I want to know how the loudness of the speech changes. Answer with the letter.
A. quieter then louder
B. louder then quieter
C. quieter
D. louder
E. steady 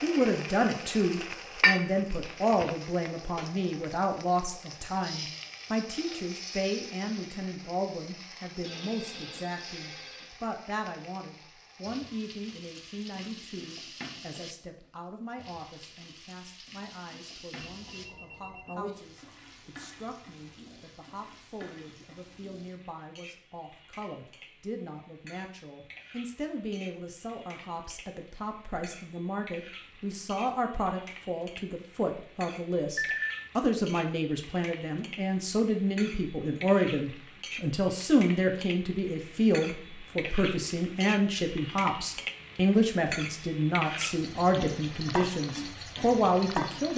A.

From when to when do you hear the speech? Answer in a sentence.
The speech can be heard from 0.0 to 46.9 s.